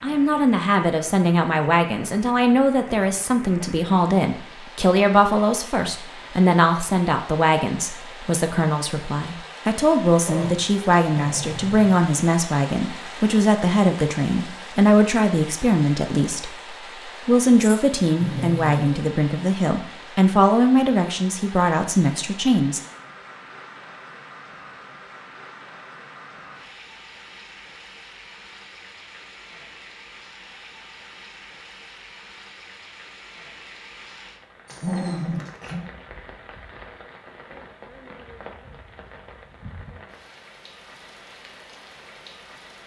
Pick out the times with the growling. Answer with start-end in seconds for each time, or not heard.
10.2-12.0, 17.6-19.1, 34.6-35.9.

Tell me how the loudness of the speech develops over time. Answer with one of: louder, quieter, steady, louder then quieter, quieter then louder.
steady.